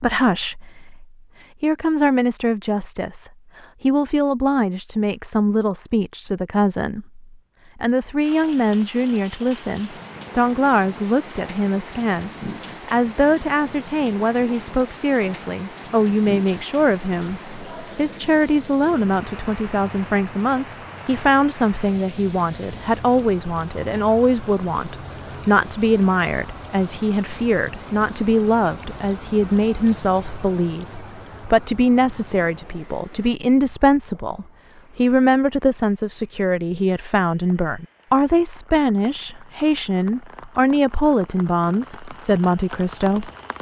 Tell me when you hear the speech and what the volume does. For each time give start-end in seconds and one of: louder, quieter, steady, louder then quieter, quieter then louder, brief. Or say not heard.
0.0-43.3 steady.